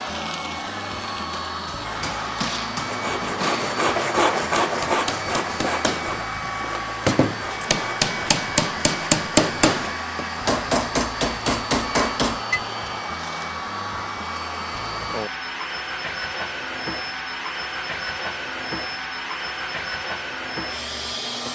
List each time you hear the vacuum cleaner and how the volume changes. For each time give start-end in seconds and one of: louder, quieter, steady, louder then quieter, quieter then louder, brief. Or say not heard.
0.0-21.5 steady.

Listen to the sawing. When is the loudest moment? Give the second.
4 s.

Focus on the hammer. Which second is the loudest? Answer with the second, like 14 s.
9 s.